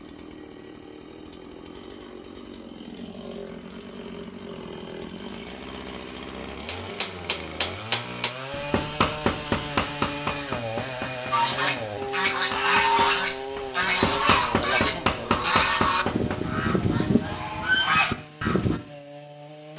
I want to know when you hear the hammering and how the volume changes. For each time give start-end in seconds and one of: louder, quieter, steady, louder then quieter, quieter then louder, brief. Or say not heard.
6.7-16.4 quieter then louder.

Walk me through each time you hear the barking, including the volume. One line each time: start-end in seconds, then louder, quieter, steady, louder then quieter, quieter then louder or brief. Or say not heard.
not heard.